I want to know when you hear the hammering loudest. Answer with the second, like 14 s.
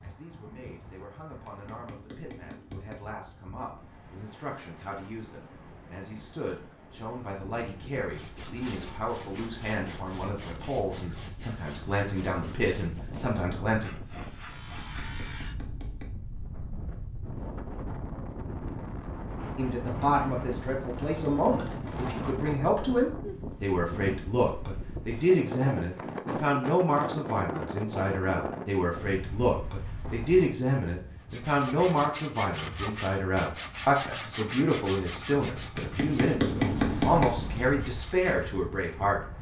37 s.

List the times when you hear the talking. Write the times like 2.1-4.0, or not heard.
0.0-13.9, 19.6-39.2.